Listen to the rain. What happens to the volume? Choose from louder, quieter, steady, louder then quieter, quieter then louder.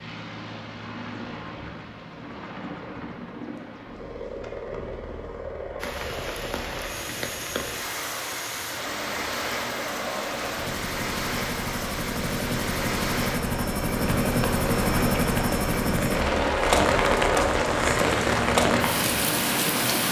louder.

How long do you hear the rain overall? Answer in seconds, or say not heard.
14 s.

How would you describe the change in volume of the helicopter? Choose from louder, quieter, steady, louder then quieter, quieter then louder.
louder.